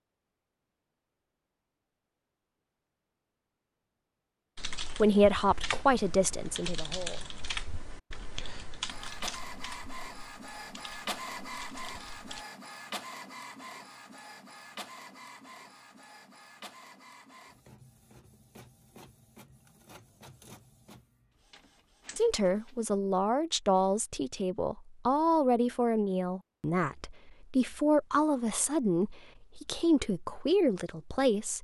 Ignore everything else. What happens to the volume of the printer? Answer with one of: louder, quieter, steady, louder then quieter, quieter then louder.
quieter.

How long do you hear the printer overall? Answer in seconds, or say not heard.
14 s.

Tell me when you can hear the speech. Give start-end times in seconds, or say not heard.
5.0-7.2, 22.1-31.5.